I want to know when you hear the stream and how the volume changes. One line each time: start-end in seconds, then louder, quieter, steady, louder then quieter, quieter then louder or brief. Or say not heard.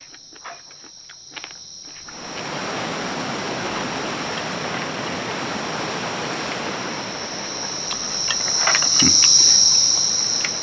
2.0-10.5 quieter.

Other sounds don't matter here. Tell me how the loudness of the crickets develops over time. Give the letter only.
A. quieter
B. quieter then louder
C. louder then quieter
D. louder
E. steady
D.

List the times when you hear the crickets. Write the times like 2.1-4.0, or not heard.
0.0-10.5.